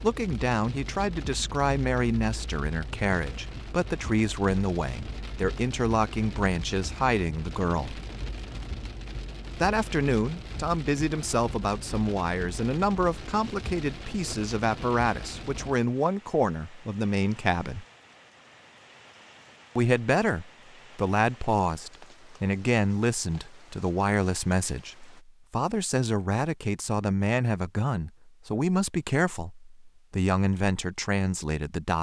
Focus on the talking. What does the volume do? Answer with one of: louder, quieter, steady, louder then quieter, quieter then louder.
steady.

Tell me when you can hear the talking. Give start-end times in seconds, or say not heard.
0.0-8.0, 9.6-17.9, 19.8-31.9.